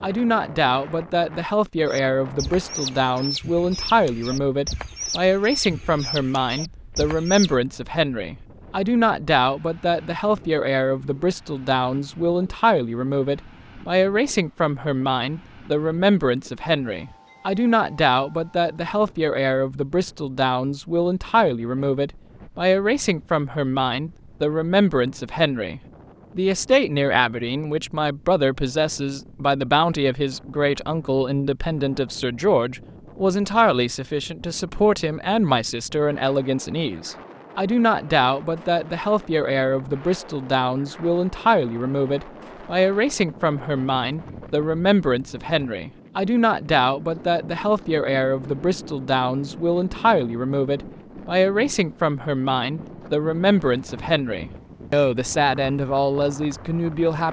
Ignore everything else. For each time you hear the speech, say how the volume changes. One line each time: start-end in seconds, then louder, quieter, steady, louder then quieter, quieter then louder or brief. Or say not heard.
0.0-57.2 steady.